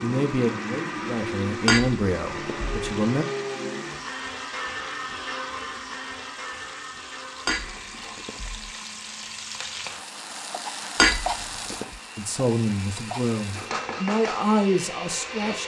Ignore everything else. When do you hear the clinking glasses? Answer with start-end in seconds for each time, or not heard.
1.6-2.8, 7.5-8.7, 10.9-11.8.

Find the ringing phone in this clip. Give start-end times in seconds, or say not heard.
not heard.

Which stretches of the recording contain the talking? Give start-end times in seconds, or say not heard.
0.0-3.2, 12.2-15.6.